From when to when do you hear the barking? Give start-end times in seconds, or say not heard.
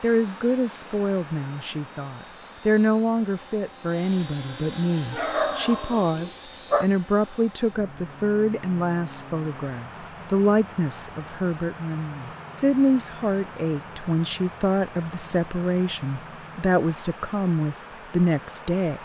5.1-6.9.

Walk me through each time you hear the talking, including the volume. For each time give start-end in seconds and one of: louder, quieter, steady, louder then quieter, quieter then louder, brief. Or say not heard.
0.0-19.0 steady.